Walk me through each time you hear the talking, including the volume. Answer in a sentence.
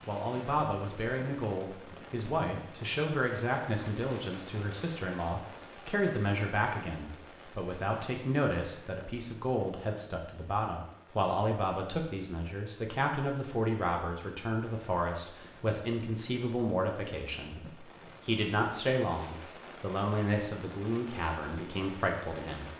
The talking can be heard from 0.1 to 22.7 s, at a steady volume.